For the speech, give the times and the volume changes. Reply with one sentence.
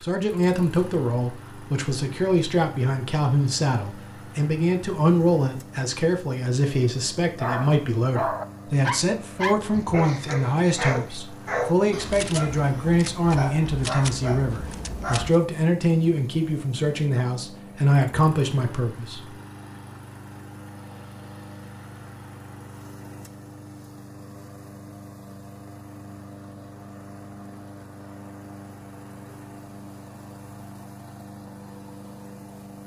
The speech can be heard from 0.0 to 19.4 s, at a steady volume.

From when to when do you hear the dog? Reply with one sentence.
The dog can be heard from 7.4 to 15.3 s.